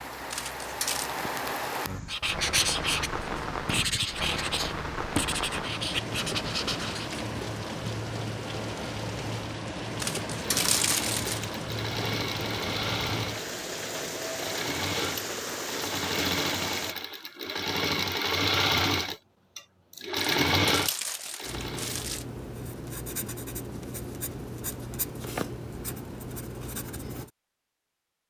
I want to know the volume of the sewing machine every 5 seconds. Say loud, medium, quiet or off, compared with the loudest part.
off, off, medium, loud, loud, off.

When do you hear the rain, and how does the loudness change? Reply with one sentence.
You can hear the rain from 0.0 to 16.9 s, at a steady volume.